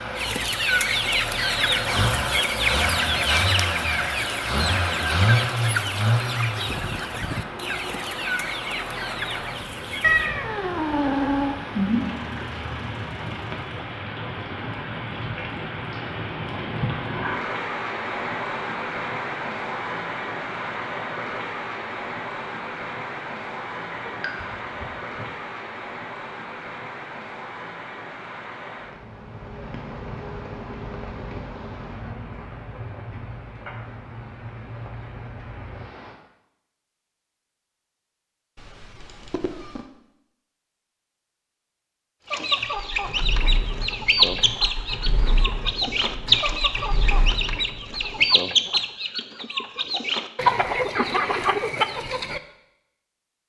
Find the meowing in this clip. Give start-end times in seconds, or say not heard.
10.0-11.6, 24.1-25.3, 38.5-39.9.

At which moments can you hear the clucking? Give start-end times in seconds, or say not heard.
0.1-10.3, 42.3-52.4.